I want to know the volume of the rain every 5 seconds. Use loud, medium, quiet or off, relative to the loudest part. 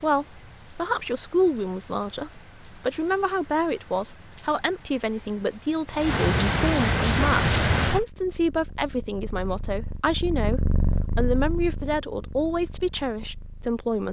quiet, loud, off.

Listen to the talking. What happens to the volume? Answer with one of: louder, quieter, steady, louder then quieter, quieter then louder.
steady.